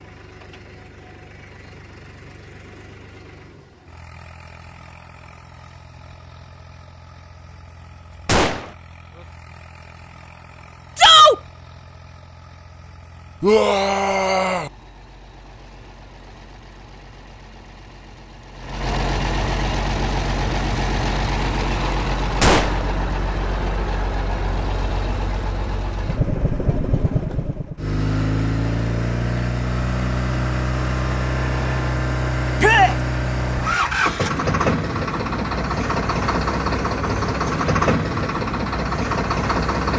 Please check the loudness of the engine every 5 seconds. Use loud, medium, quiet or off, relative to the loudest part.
quiet, quiet, quiet, medium, loud, loud, loud, loud.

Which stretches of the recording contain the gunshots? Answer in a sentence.
You can hear the gunshots from 8.2 to 8.8 s and from 22.4 to 22.9 s.